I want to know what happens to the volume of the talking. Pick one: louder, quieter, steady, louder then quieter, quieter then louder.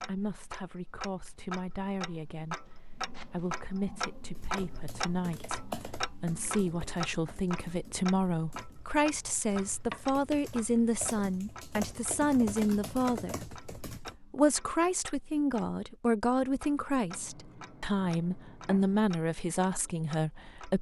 louder.